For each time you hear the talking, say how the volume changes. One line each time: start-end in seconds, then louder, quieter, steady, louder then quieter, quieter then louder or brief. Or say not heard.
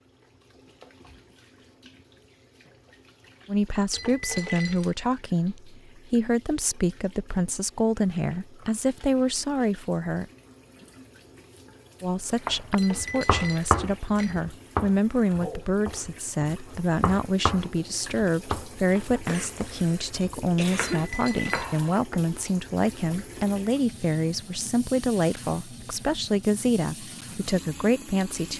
3.5-10.2 steady
12.0-28.5 steady.